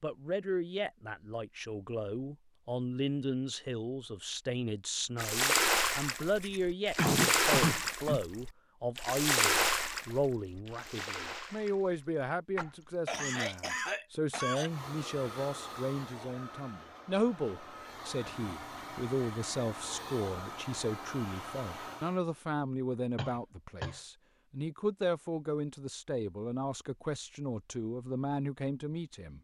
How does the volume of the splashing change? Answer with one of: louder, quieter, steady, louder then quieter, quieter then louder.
quieter.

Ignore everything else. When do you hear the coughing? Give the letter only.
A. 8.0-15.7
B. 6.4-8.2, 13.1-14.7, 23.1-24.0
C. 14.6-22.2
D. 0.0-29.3
B.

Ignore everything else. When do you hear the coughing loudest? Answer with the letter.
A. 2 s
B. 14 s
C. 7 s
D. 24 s
C.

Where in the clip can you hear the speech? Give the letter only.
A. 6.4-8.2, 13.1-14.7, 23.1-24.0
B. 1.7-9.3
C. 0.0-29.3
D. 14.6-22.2
C.